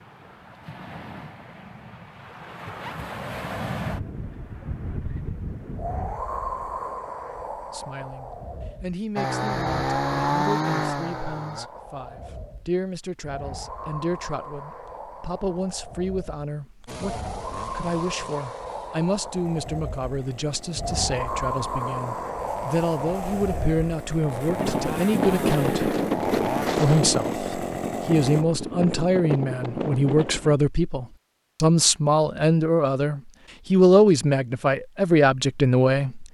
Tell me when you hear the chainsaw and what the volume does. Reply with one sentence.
You can hear the chainsaw briefly from 9.2 to 11.7 s; and from 16.9 to 28.4 s, getting louder.